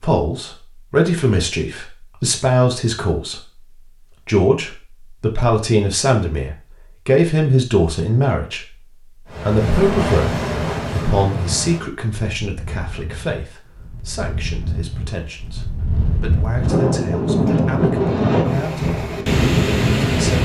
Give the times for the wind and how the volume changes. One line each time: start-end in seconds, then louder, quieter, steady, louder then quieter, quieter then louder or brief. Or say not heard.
9.3-20.3 quieter then louder.